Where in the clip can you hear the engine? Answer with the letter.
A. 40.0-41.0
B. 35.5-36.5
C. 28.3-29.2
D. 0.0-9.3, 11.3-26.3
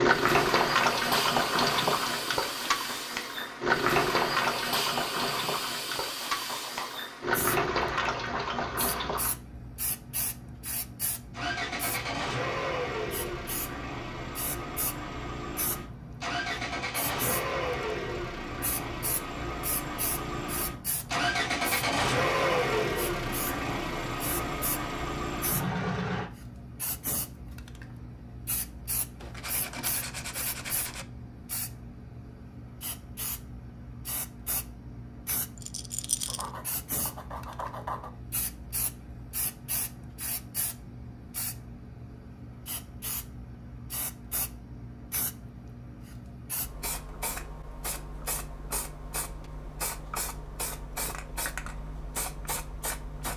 D.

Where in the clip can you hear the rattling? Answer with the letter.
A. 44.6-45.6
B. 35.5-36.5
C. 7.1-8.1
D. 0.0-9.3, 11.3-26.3
B.